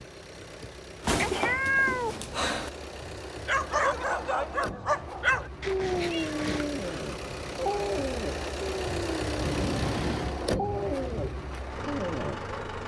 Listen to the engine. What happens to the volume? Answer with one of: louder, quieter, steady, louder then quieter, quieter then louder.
louder.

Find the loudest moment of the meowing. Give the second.
2 s.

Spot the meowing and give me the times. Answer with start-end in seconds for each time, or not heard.
1.0-2.7, 5.6-6.8, 9.4-10.3.